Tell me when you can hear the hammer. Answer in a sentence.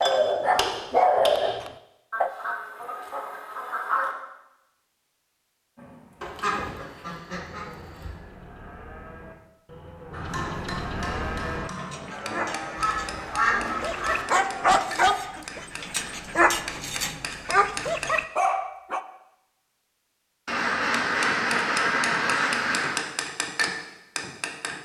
The hammer can be heard from 0.0 to 1.6 s, from 10.1 to 18.2 s and from 21.1 to 24.8 s.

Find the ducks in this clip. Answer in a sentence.
You can hear the ducks from 2.1 to 4.1 s, from 6.2 to 8.2 s, from 12.8 to 14.2 s and from 20.4 to 23.1 s.